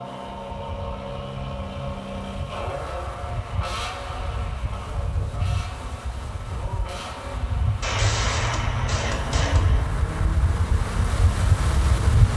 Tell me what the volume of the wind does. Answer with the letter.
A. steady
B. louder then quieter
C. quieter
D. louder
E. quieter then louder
D.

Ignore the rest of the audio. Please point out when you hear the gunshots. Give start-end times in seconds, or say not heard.
7.8-9.8.